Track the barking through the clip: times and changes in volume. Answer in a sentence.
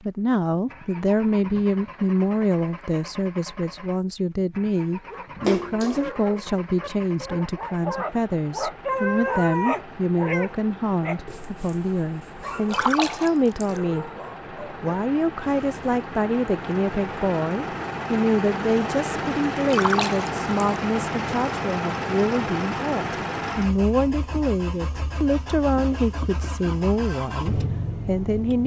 The barking can be heard from 5.0 to 12.9 s, getting louder then quieter; and briefly from 13.7 to 16.0 s.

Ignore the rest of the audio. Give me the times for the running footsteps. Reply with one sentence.
You can't hear the running footsteps here.